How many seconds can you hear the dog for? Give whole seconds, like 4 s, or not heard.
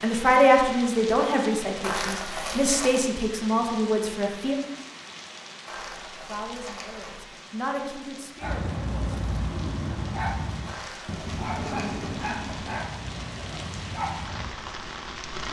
6 s.